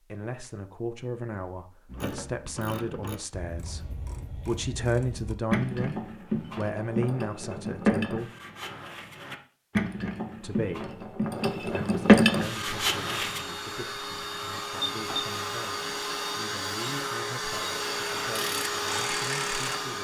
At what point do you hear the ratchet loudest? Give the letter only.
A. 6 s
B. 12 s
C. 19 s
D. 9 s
B.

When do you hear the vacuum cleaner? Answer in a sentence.
You can hear the vacuum cleaner from 12.3 to 20.0 s.